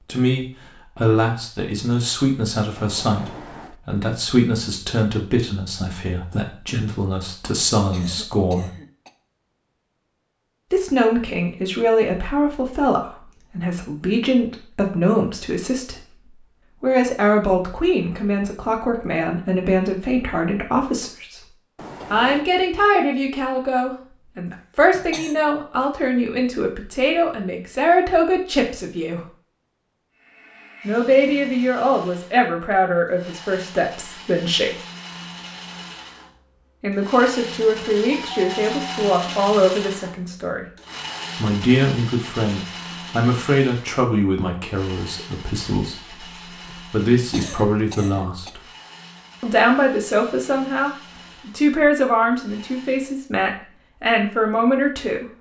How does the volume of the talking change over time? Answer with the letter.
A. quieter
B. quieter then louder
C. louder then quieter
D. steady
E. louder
D.